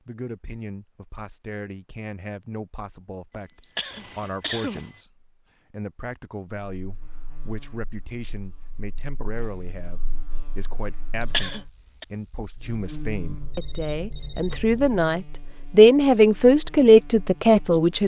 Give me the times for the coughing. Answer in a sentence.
You can hear the coughing from 3.6 to 4.8 s and from 11.2 to 12.1 s.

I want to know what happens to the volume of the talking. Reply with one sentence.
The volume of the talking goes up.